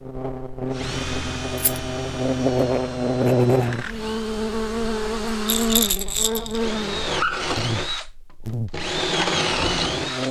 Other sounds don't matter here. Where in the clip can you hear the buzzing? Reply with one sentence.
You can hear the buzzing from 0.0 to 10.2 s.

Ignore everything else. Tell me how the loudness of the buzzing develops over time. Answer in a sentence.
The volume of the buzzing goes up, then down.